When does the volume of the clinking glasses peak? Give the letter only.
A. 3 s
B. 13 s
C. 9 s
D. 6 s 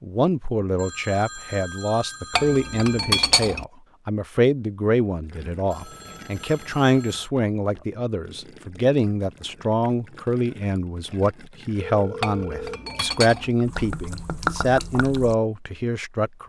A.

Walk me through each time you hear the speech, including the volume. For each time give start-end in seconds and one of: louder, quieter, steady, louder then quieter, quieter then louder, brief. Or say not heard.
0.0-16.4 steady.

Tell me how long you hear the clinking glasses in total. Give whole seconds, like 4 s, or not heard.
3 s.